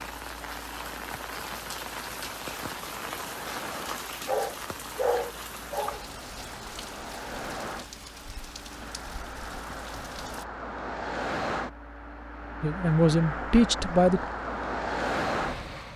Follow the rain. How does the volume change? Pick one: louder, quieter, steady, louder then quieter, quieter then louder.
quieter.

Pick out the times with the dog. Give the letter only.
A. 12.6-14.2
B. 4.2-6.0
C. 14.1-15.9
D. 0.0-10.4
B.